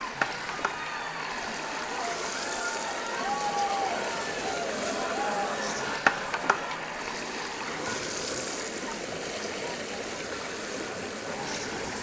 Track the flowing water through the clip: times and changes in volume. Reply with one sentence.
You can hear the flowing water from 0.0 to 11.9 s, at a steady volume.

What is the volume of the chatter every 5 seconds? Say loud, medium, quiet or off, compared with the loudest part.
loud, loud, medium.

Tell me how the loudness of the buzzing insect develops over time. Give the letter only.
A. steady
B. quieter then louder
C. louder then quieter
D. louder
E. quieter
C.